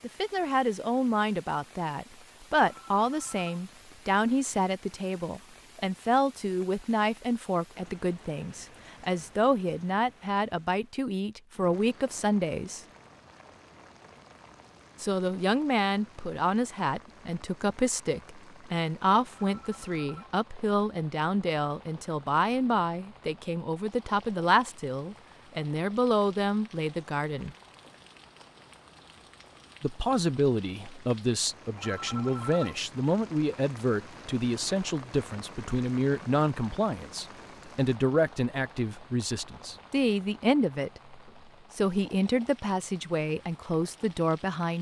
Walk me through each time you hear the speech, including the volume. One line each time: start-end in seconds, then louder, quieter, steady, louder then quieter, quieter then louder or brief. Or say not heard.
0.0-12.8 steady
15.0-27.6 steady
29.8-44.7 steady.